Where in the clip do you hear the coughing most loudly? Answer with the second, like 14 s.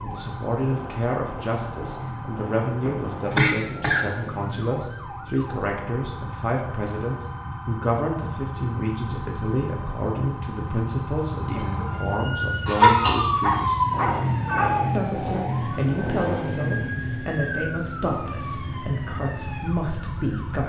13 s.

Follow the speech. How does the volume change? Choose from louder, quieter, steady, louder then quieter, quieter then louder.
steady.